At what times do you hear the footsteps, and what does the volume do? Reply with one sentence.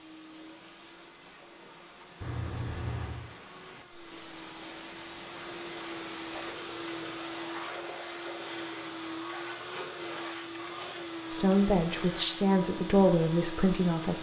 The footsteps can't be heard in this clip.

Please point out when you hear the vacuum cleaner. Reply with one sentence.
You can hear the vacuum cleaner from 0.0 to 14.1 s.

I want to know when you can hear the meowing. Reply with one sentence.
The meowing can be heard from 2.2 to 3.2 s.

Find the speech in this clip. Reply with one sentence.
You can hear the speech from 11.3 to 14.1 s.